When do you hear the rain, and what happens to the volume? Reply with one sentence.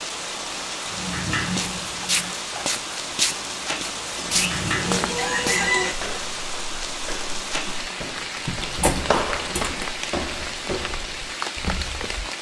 The rain can be heard from 0.0 to 12.3 s, at a steady volume.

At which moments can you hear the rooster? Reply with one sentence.
The rooster can be heard from 4.2 to 6.0 s.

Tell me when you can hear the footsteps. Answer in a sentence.
You can hear the footsteps from 1.5 to 12.2 s.